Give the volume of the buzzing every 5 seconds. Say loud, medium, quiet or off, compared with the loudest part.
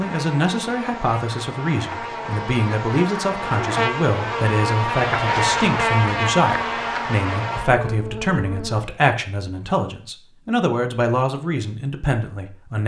loud, loud, off.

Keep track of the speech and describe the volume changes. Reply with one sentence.
The loudness of the speech stays about the same.